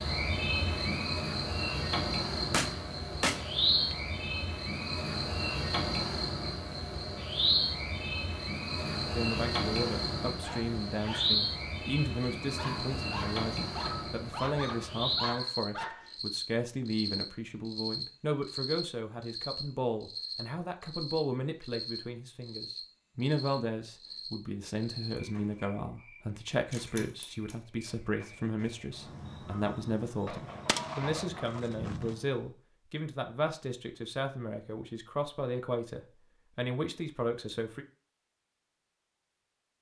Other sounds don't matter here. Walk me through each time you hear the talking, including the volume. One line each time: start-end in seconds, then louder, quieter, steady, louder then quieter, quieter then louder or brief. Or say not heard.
9.2-37.9 steady.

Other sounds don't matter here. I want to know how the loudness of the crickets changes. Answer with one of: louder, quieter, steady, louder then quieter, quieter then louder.
quieter.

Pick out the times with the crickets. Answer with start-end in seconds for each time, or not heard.
0.0-32.4.